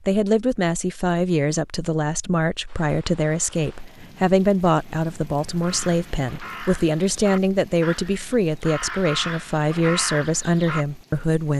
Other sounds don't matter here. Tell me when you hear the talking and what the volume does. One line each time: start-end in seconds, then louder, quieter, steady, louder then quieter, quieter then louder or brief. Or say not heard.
0.1-11.5 steady.